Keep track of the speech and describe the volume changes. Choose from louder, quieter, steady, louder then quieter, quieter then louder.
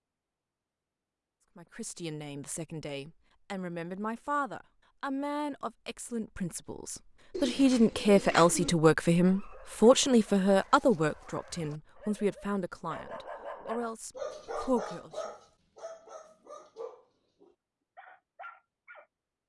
louder then quieter.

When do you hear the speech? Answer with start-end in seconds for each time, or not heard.
1.6-15.2.